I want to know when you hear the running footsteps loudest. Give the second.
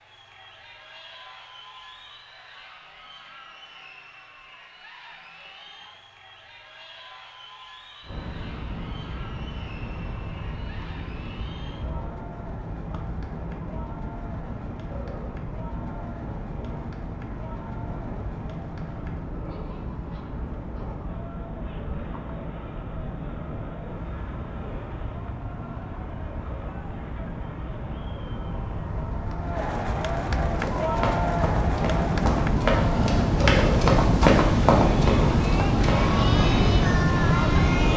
34 s.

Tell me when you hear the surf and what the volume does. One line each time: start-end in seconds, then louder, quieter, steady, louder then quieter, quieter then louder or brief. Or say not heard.
8.0-37.9 louder.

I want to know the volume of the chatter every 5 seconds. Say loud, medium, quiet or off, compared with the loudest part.
quiet, quiet, quiet, quiet, quiet, medium, loud, loud.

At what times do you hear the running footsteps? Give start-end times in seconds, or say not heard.
30.6-36.1.